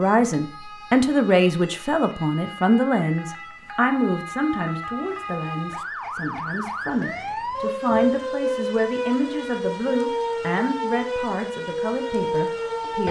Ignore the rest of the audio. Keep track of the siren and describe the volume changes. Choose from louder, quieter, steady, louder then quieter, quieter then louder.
louder.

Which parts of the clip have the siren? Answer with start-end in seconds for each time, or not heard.
0.0-13.0.